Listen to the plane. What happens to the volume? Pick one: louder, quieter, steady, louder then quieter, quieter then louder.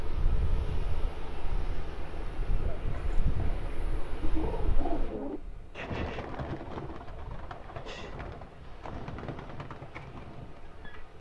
quieter.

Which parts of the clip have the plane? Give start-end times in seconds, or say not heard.
0.0-11.1.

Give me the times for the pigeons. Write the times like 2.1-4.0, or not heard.
2.5-11.1.